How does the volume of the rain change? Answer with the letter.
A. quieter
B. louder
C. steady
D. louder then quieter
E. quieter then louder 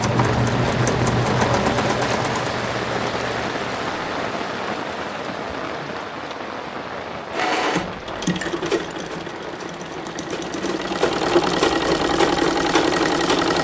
A.